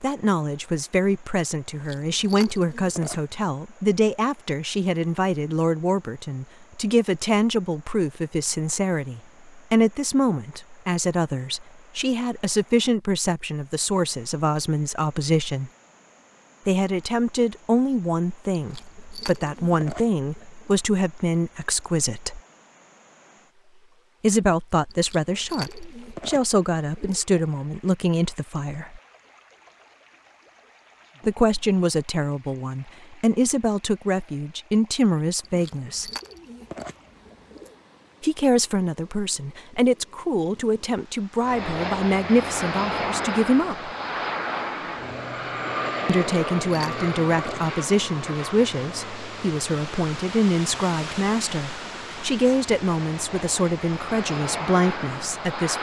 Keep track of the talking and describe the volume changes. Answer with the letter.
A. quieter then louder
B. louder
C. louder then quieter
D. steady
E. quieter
D.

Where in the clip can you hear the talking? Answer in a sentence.
You can hear the talking from 0.0 to 15.7 s, from 16.6 to 22.4 s, from 24.2 to 29.0 s, from 31.2 to 36.1 s, from 38.2 to 43.9 s and from 46.0 to 55.7 s.